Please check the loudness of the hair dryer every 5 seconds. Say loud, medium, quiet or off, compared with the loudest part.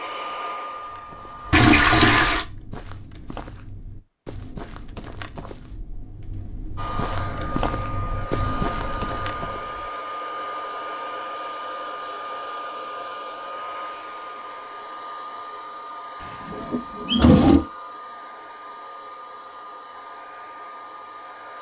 loud, loud, loud, medium, medium.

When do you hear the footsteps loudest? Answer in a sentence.
The volume of the footsteps peaks at 8 seconds.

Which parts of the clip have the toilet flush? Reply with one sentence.
The toilet flush can be heard from 1.5 to 2.5 s and from 16.4 to 17.6 s.